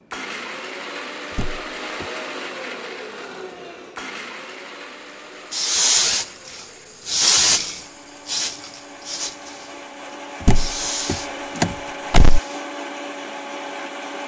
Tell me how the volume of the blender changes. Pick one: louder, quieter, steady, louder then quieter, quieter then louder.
quieter then louder.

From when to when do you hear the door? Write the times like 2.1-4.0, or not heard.
1.4-2.0, 10.4-12.4.